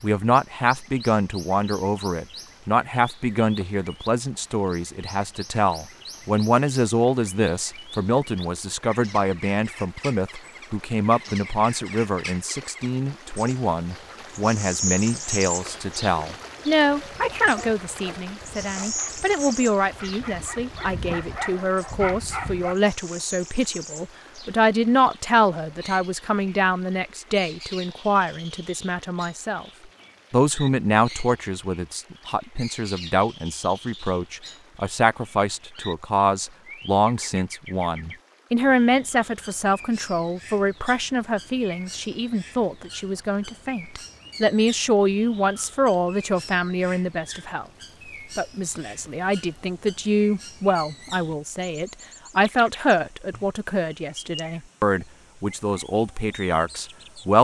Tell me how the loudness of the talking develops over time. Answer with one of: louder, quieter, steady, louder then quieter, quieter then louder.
steady.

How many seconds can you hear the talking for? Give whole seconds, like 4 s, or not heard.
56 s.